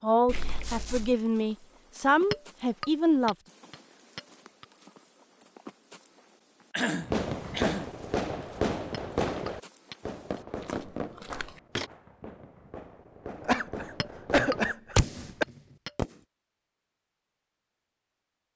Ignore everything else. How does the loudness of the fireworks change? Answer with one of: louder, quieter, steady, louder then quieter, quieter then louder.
quieter then louder.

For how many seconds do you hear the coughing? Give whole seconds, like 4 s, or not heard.
4 s.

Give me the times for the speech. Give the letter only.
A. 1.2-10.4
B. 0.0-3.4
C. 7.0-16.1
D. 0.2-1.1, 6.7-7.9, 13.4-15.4
B.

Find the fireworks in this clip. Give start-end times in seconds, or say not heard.
7.0-16.1.